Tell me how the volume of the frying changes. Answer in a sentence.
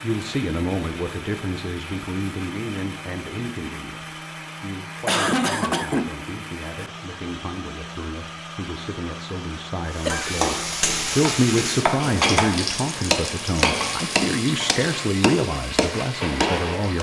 The loudness of the frying goes down.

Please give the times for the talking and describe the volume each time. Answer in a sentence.
You can hear the talking from 0.0 to 16.9 s, getting quieter then louder.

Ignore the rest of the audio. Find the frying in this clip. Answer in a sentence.
You can hear the frying from 9.8 to 16.9 s.